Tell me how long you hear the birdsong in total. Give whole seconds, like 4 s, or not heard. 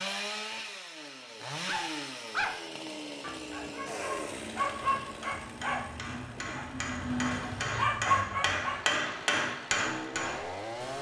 not heard.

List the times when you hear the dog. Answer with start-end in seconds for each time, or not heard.
1.6-8.8.